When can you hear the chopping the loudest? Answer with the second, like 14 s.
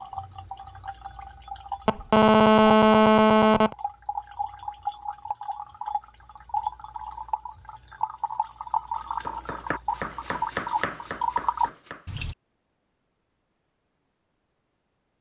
11 s.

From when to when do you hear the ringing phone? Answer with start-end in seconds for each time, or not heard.
1.9-3.8.